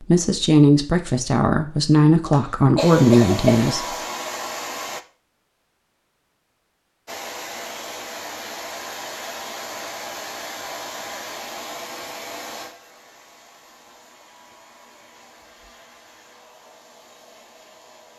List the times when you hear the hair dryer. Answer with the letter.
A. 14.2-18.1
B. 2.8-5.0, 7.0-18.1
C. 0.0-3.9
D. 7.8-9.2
B.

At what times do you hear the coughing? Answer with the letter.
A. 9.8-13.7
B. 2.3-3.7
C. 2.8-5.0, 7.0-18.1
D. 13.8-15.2
B.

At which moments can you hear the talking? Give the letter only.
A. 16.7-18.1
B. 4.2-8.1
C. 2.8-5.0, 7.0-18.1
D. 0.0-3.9
D.